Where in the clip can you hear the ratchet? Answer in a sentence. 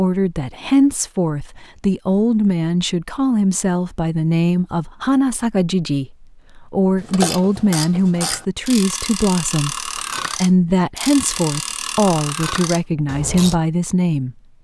You can hear the ratchet from 7.0 to 13.6 s.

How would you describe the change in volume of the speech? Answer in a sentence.
The loudness of the speech stays about the same.